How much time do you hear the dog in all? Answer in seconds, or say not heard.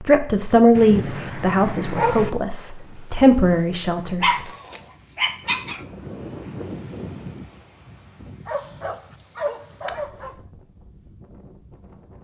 5 s.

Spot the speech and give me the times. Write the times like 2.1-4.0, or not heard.
0.0-4.5.